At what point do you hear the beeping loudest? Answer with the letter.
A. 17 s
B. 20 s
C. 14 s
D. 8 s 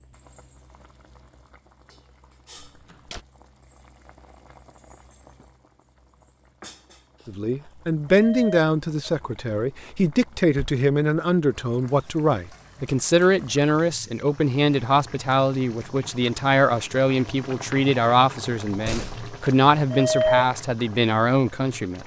B.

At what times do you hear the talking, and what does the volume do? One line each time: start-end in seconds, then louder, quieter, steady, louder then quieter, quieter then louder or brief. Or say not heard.
7.2-22.0 steady.